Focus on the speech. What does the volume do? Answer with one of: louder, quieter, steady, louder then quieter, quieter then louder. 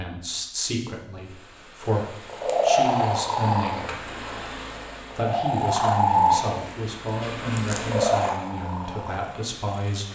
steady.